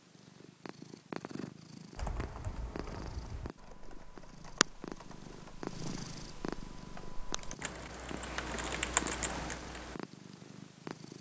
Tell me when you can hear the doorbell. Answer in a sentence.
The doorbell can't be heard in this clip.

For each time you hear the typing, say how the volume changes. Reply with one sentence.
You can hear the typing from 1.9 to 9.9 s, getting quieter then louder.